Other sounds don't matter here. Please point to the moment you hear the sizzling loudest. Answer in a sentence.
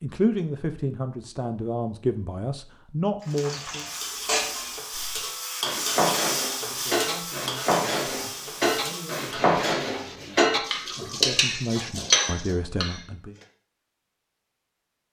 The volume of the sizzling peaks at 6 seconds.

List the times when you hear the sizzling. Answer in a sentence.
The sizzling can be heard from 3.2 to 9.4 s.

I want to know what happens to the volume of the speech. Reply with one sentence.
The loudness of the speech goes down, then up.